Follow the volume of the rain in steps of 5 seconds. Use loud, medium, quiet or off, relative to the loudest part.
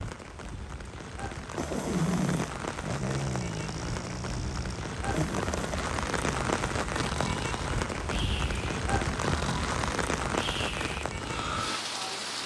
medium, loud, loud.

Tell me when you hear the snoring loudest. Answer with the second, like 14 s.
2 s.